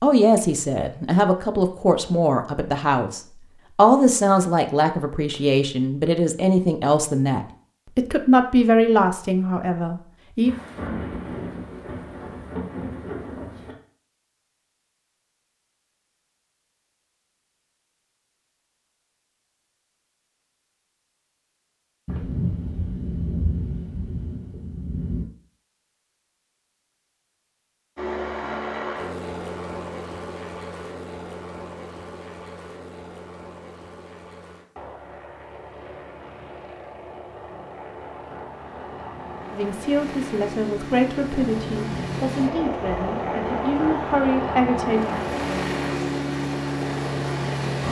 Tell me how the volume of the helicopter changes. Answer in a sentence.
The loudness of the helicopter goes down, then up.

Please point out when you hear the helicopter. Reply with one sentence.
You can hear the helicopter from 27.9 to 47.8 s.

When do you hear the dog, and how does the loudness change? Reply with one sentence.
You can't hear the dog here.